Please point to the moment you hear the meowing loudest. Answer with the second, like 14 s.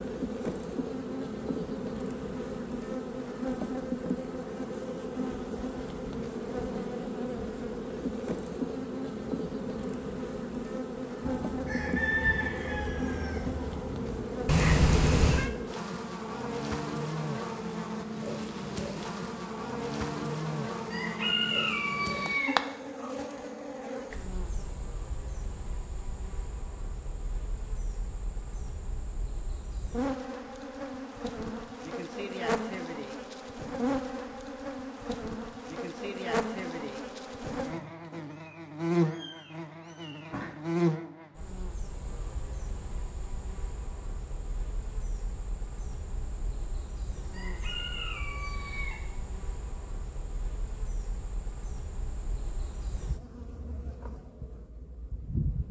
15 s.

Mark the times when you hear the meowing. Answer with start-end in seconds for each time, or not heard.
14.4-15.5, 37.8-40.5.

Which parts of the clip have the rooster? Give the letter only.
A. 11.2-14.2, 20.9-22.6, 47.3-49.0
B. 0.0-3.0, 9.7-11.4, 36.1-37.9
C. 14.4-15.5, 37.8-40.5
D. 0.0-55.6
A.